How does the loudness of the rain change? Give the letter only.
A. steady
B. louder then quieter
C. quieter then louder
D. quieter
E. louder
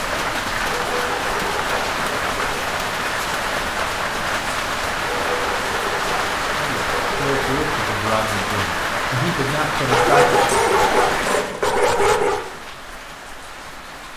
D.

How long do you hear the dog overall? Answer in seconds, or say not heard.
7 s.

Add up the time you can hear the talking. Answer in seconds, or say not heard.
4 s.